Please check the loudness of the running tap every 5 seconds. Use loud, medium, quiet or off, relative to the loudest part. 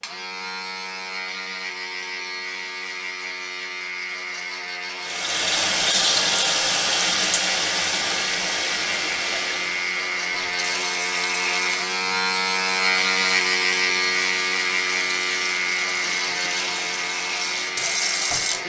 off, loud, medium, medium.